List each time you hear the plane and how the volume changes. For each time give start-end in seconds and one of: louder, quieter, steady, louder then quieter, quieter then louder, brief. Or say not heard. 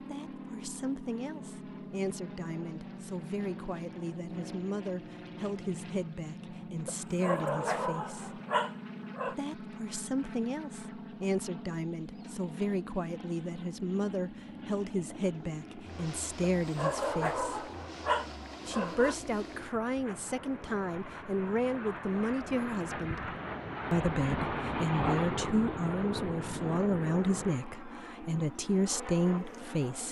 0.0-30.0 louder.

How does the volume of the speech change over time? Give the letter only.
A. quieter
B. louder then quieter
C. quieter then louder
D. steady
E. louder
E.